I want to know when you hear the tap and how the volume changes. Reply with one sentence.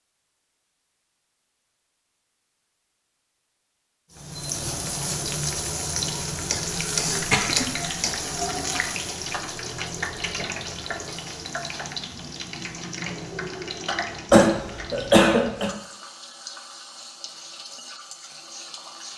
You can hear the tap from 4.2 to 19.1 s, getting quieter.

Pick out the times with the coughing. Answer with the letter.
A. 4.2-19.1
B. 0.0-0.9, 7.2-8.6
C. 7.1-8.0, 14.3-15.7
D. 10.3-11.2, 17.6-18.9
C.